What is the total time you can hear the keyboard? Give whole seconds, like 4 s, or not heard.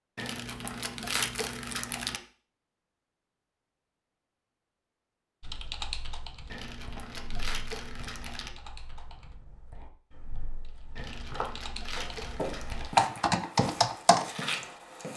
9 s.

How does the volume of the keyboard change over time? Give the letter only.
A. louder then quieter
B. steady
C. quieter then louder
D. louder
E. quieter
C.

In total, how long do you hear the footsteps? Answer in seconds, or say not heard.
4 s.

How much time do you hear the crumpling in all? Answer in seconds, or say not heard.
6 s.